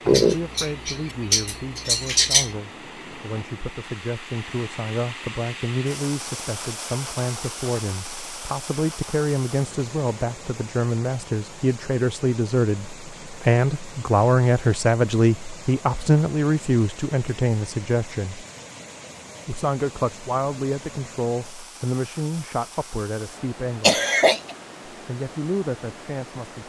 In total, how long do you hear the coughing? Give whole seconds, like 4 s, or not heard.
3 s.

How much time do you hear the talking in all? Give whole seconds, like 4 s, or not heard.
25 s.